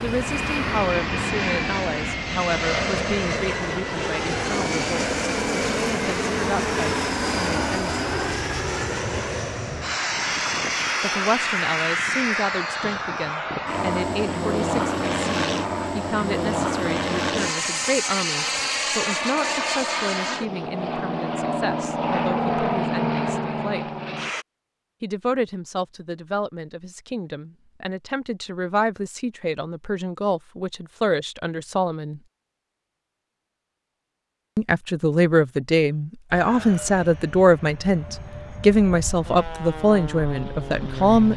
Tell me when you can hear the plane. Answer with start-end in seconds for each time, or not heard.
0.0-24.4, 36.2-41.3.